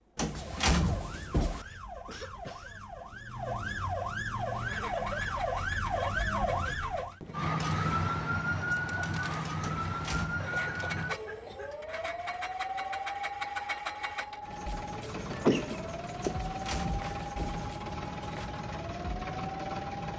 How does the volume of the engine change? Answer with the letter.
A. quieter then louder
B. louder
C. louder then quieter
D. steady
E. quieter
B.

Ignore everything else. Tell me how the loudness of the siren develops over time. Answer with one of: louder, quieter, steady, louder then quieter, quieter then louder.
louder then quieter.